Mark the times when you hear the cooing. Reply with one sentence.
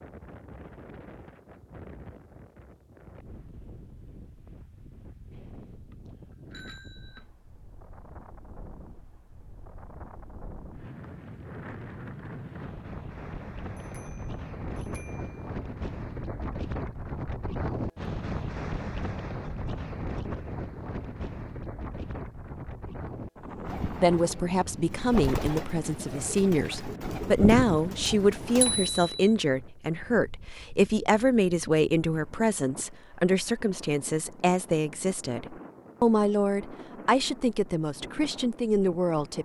You can hear the cooing from 23.6 to 28.9 s.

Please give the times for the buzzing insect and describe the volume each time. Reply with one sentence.
The buzzing insect can't be heard in this clip.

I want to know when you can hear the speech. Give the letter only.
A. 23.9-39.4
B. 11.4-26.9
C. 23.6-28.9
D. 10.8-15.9
A.